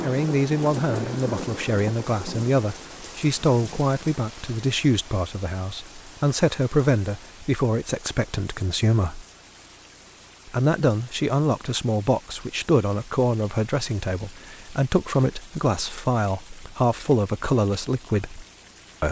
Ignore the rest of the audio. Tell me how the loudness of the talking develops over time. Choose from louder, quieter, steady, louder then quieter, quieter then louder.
steady.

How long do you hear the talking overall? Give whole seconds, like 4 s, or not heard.
18 s.